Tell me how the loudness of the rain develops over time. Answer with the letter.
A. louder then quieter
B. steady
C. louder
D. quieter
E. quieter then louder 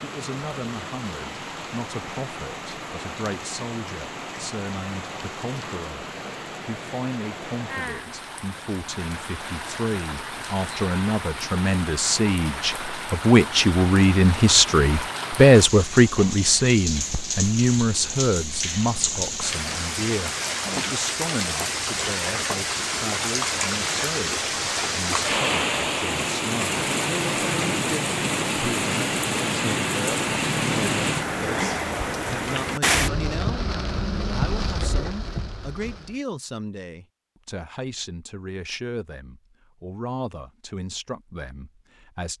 C.